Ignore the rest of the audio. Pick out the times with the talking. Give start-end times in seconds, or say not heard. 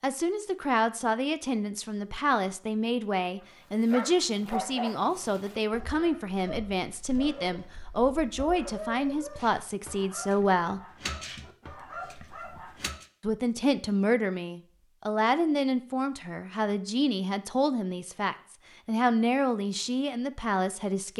0.0-10.8, 13.2-21.1.